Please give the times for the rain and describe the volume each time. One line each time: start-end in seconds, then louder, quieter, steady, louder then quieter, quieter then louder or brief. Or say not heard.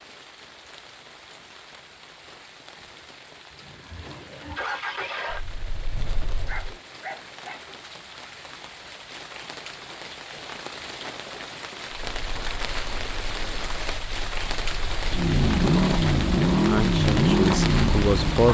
0.0-18.4 louder.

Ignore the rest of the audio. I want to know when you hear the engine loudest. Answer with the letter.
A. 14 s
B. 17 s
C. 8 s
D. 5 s
B.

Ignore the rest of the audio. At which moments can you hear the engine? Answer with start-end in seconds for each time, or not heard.
3.6-6.8, 12.0-18.4.